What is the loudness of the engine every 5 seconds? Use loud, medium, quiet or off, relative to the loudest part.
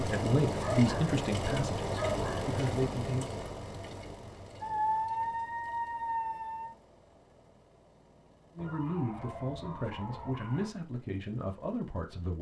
loud, quiet, quiet.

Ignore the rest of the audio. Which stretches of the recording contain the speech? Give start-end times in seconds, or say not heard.
0.0-3.2, 8.6-12.3.